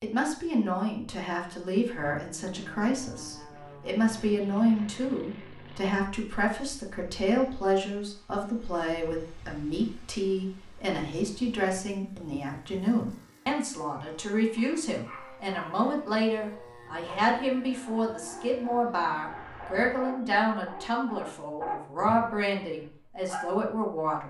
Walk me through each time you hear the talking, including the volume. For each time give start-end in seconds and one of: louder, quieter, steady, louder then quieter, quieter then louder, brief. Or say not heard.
0.0-24.2 steady.